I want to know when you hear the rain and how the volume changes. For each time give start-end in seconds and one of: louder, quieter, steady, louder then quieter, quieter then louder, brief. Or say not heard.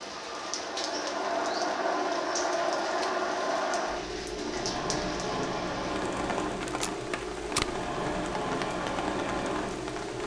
0.0-10.2 steady.